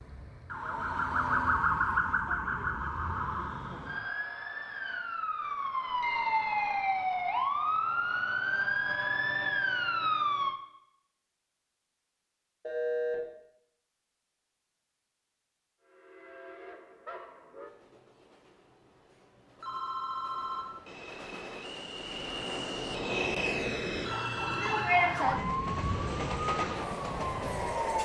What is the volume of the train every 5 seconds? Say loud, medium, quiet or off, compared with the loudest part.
off, off, off, quiet, loud, loud.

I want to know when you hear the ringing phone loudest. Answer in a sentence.
The loudest moment of the ringing phone is at 13 seconds.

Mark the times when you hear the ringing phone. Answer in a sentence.
The ringing phone can be heard from 6.0 to 7.0 s, from 12.6 to 13.2 s and from 19.1 to 20.6 s.